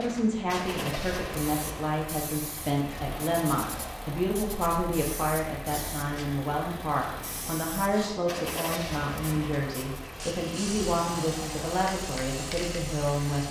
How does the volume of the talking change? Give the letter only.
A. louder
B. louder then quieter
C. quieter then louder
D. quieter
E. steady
E.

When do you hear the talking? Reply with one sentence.
The talking can be heard from 0.0 to 13.4 s.